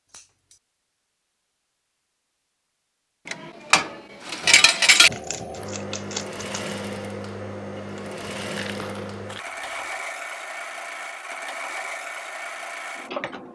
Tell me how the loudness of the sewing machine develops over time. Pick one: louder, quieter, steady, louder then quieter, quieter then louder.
steady.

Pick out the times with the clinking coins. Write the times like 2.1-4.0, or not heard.
3.2-5.1, 8.4-9.2.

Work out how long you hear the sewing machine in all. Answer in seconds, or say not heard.
9 s.